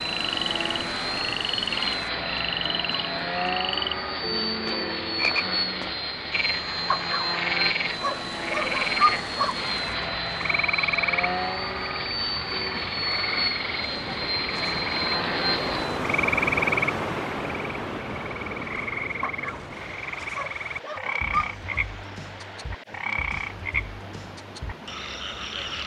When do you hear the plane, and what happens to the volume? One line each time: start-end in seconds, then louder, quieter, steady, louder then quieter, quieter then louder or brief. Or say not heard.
0.0-16.1 steady.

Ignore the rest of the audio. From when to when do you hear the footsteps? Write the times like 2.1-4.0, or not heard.
not heard.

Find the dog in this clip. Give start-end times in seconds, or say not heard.
6.9-9.6, 19.2-19.6, 20.3-21.8.